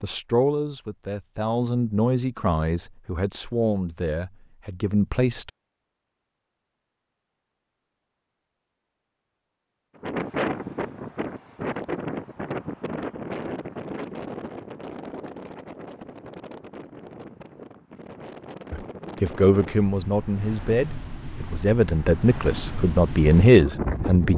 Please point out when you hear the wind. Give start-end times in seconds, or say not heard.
10.0-24.3.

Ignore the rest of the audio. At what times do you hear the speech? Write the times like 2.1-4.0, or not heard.
0.0-5.5, 18.7-24.3.